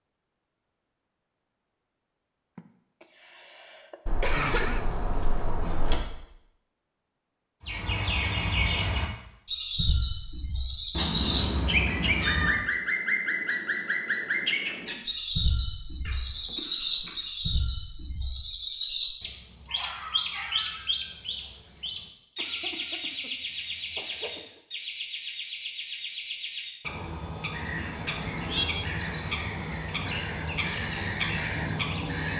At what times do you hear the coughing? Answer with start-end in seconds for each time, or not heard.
2.5-4.8, 16.1-17.2, 22.4-24.6.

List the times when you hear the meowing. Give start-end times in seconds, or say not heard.
4.0-6.0, 10.9-12.7, 28.1-28.6.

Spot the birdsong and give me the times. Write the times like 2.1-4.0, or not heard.
7.6-32.3.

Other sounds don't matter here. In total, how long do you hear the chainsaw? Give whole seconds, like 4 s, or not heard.
not heard.